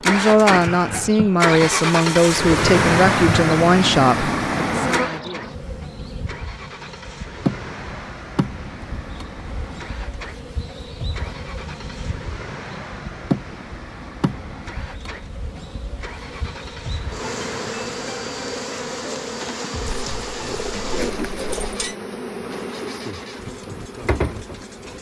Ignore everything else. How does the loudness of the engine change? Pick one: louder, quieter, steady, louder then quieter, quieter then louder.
quieter.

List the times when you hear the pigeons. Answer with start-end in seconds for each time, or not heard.
19.9-21.9.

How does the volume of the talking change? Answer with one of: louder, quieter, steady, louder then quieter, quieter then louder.
quieter.